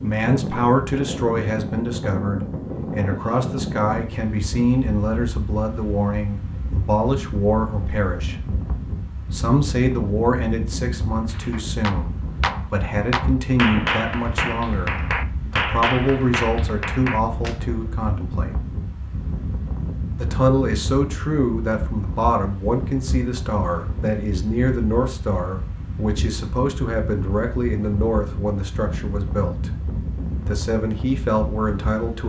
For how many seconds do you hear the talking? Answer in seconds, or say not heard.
29 s.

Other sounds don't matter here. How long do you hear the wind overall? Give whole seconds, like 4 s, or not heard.
32 s.